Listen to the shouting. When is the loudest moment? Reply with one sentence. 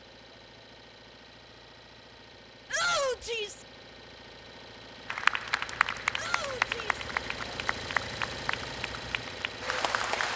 The loudest moment of the shouting is at 3 seconds.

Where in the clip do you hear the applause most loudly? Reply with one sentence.
The volume of the applause peaks at 6 seconds.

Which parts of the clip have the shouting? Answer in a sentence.
The shouting can be heard from 2.7 to 3.6 s and from 6.2 to 7.0 s.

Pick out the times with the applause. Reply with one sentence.
The applause can be heard from 5.1 to 10.3 s.